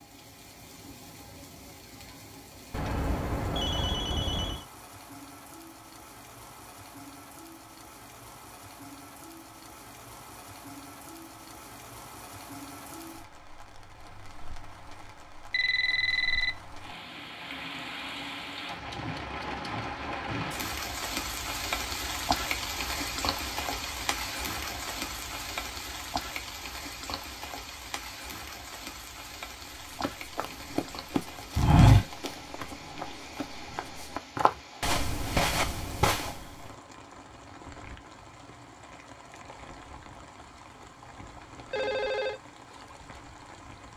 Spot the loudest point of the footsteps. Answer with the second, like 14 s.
32 s.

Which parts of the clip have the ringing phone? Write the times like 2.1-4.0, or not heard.
2.7-4.7, 15.5-16.6, 41.7-42.4.